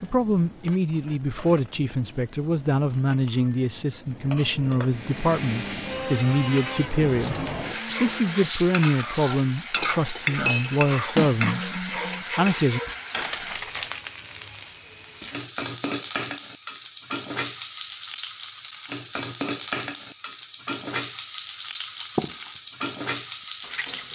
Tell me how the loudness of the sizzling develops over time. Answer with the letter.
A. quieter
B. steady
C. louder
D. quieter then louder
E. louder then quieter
C.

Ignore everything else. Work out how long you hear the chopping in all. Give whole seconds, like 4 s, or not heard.
not heard.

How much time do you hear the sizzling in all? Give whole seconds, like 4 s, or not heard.
24 s.